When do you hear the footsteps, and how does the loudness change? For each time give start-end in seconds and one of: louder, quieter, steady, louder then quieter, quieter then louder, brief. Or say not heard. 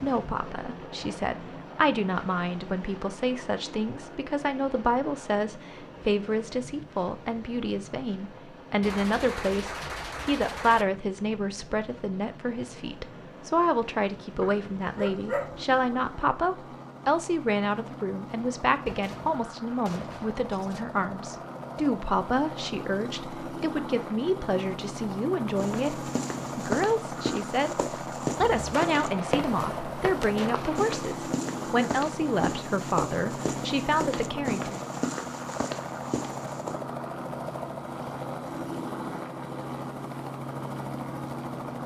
25.6-36.8 steady.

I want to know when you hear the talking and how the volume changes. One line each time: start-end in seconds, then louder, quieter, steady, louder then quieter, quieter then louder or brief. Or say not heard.
0.0-34.8 steady.